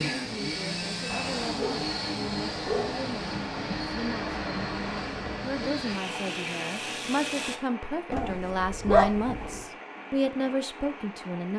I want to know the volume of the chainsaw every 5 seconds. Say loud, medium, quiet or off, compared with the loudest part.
loud, loud, off.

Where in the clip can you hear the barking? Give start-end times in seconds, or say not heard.
1.1-4.0, 8.1-9.6.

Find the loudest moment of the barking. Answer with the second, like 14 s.
9 s.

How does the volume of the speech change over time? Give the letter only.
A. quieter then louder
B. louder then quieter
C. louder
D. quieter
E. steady
C.